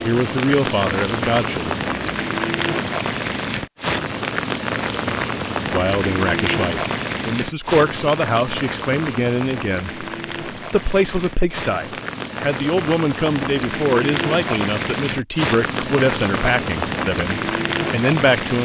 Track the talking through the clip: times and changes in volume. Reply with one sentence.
The talking can be heard briefly from 0.0 to 1.8 s; and from 5.7 to 18.6 s, at a steady volume.